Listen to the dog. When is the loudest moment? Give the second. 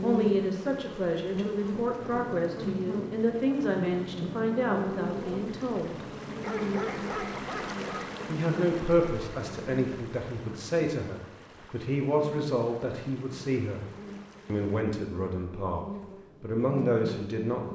7 s.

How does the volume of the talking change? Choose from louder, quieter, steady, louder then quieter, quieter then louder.
steady.